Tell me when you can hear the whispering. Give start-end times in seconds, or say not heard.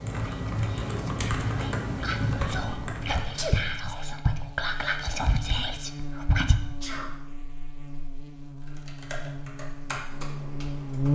0.1-6.5.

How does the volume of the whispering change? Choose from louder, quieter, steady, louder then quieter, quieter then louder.
louder.